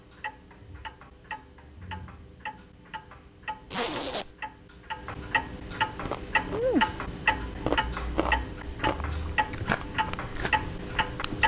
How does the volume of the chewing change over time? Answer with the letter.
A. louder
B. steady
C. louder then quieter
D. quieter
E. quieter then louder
D.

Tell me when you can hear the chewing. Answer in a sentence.
You can hear the chewing from 6.0 to 11.4 s.